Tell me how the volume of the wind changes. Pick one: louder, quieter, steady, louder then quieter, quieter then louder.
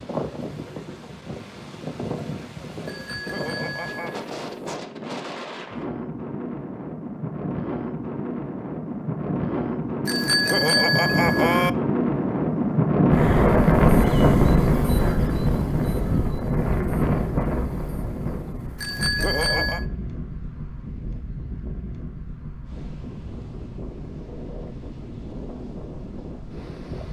louder then quieter.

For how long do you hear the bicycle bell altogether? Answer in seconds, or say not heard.
4 s.